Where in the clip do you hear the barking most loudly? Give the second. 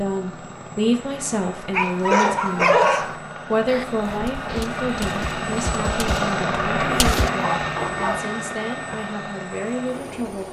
3 s.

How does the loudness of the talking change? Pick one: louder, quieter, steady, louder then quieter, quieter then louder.
quieter.